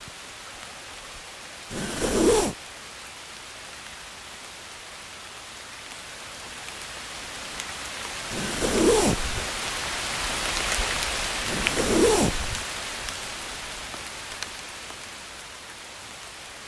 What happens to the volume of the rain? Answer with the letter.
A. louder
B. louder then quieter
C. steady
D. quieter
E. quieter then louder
B.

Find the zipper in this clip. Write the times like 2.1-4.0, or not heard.
1.7-2.5, 8.3-9.5, 11.4-12.7.